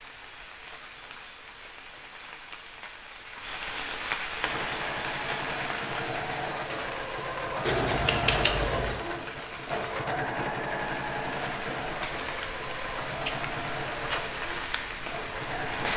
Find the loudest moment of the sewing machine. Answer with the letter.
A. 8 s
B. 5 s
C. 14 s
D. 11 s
A.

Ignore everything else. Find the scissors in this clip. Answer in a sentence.
The scissors can be heard from 7.7 to 9.0 s.